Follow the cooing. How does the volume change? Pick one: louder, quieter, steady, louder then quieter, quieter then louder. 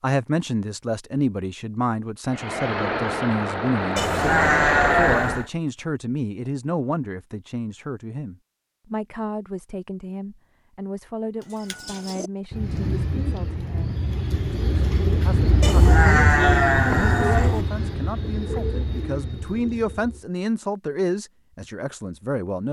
louder then quieter.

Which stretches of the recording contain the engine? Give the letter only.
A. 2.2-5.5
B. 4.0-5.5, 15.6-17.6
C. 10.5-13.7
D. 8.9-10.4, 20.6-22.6
A.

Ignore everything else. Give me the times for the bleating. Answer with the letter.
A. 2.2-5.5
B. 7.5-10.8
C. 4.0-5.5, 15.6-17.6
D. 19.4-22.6
C.